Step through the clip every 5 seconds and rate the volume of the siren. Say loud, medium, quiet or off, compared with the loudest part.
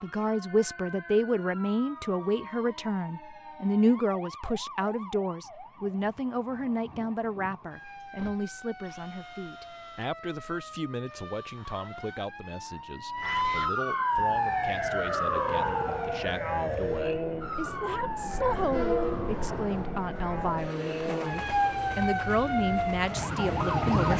quiet, quiet, loud, loud, loud.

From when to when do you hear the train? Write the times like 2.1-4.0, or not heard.
14.1-23.9.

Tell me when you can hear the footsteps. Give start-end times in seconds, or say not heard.
not heard.